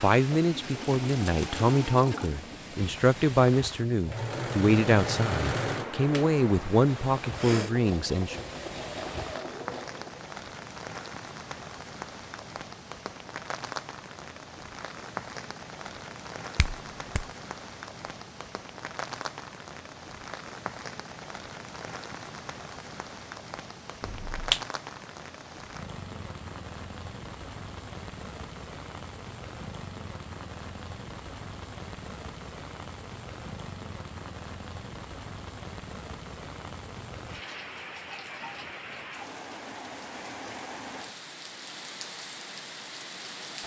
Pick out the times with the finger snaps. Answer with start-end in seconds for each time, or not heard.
16.6-17.2, 24.0-24.6.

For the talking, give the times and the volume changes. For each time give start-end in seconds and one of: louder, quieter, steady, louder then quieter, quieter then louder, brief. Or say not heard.
0.0-8.4 steady.